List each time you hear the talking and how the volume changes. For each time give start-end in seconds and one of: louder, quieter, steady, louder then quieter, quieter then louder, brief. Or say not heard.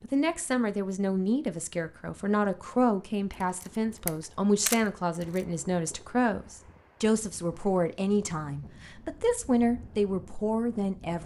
0.0-11.2 steady.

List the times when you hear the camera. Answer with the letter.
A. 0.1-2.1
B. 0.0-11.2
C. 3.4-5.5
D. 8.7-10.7
C.